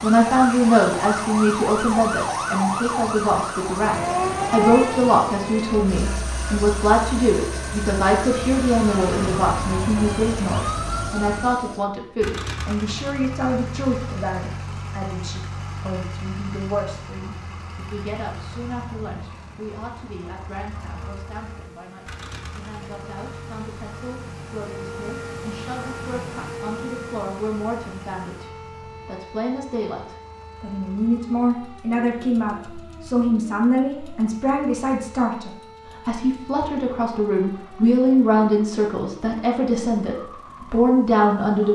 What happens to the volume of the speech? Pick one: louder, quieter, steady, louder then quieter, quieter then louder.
quieter then louder.